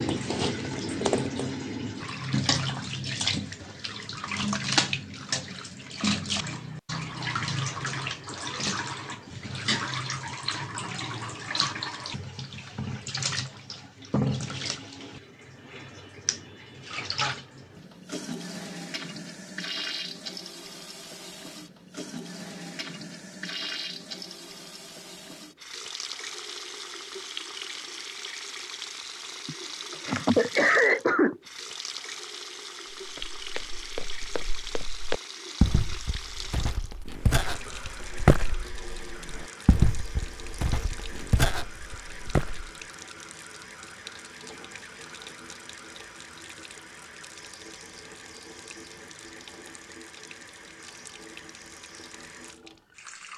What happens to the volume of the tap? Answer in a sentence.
The volume of the tap goes down.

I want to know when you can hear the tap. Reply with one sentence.
The tap can be heard from 0.0 to 53.3 s.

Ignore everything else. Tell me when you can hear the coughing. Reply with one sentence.
You can hear the coughing from 29.4 to 31.4 s.